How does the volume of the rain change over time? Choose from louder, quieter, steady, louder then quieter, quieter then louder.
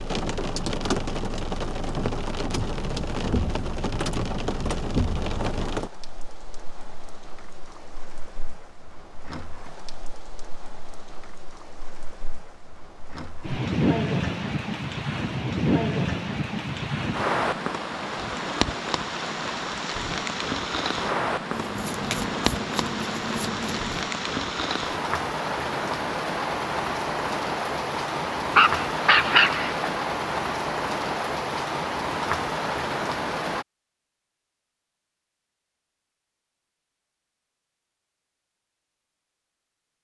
quieter then louder.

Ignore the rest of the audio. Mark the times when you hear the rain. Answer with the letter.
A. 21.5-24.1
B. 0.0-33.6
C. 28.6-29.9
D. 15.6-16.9
B.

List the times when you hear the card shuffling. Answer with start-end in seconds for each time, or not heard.
21.5-24.1.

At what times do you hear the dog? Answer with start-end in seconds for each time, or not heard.
28.6-29.9.